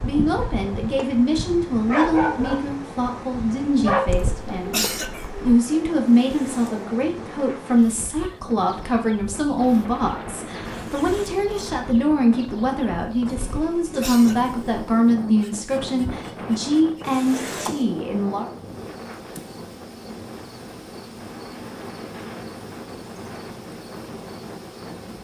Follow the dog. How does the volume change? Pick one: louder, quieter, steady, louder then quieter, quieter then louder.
louder then quieter.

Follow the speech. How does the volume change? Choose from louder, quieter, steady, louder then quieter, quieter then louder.
steady.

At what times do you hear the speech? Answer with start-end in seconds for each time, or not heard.
0.0-18.4.